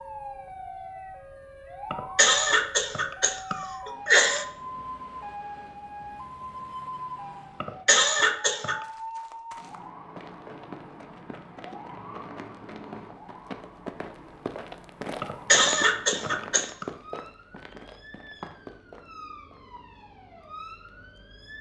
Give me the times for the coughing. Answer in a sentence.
The coughing can be heard from 1.9 to 4.5 s, from 7.6 to 8.8 s and from 15.2 to 16.9 s.